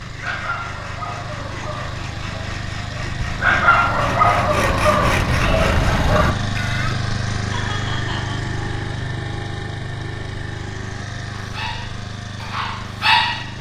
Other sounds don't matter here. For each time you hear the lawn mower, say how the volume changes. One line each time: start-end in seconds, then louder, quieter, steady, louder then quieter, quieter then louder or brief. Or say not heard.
0.0-13.5 louder then quieter.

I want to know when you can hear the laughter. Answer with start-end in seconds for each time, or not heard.
7.5-8.4.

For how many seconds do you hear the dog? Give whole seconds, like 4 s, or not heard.
9 s.